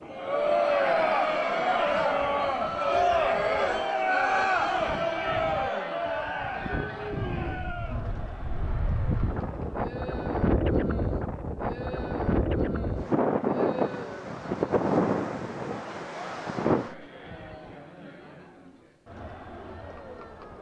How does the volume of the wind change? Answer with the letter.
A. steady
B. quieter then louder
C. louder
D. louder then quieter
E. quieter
C.